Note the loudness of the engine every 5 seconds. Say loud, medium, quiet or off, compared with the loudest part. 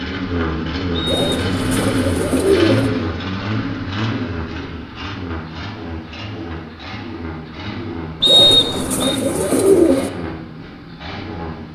loud, medium, medium.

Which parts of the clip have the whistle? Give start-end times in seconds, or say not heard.
0.9-1.3, 8.2-9.2.